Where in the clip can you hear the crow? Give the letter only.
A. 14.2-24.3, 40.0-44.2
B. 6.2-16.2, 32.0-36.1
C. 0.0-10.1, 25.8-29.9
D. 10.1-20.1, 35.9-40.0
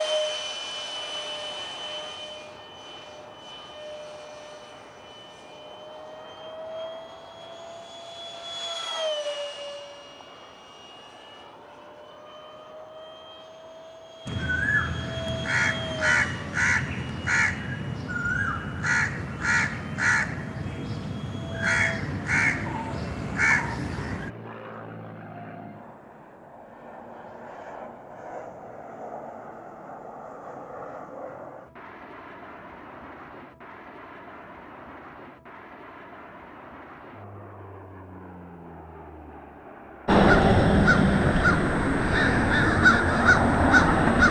A.